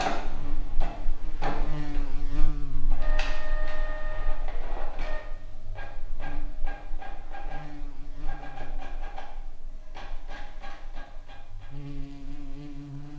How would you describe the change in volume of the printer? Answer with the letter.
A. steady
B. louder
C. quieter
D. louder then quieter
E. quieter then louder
C.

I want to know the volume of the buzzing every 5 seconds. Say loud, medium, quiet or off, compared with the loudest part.
loud, medium, loud.